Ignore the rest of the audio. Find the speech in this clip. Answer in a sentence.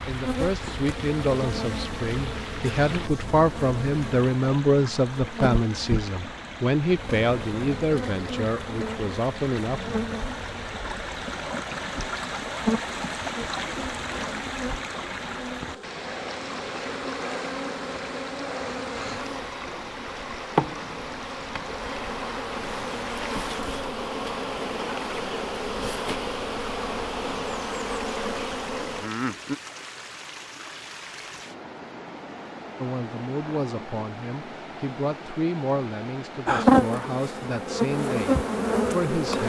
You can hear the speech from 0.1 to 9.9 s and from 32.8 to 39.4 s.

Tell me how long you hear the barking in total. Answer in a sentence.
The barking can't be heard in this clip.